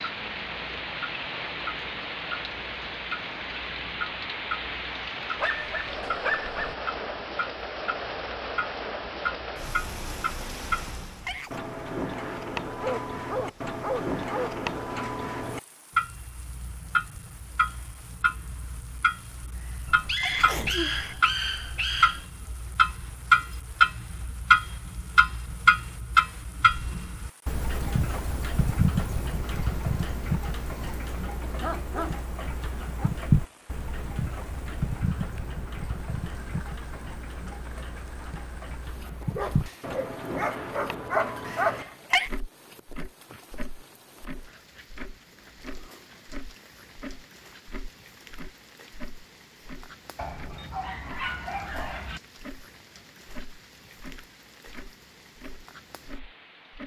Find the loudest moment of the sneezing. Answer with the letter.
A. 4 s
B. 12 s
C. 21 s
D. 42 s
D.